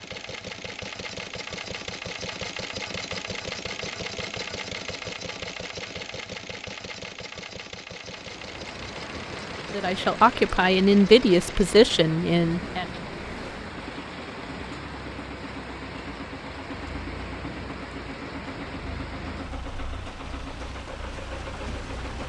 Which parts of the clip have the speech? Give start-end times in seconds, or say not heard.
9.7-12.8.